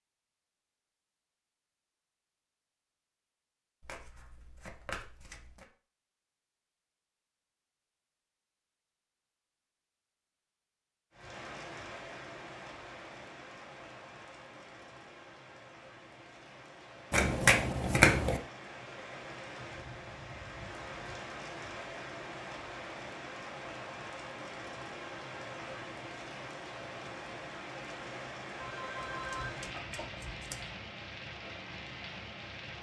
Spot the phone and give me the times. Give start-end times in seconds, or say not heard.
28.6-30.1.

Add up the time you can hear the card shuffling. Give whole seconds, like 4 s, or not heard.
5 s.